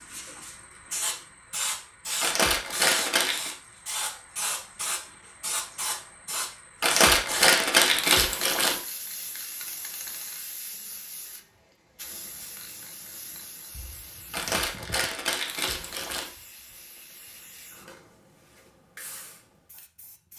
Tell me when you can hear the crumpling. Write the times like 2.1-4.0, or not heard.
2.2-3.5, 6.8-8.8, 14.3-16.3.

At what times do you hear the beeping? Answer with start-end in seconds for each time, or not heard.
not heard.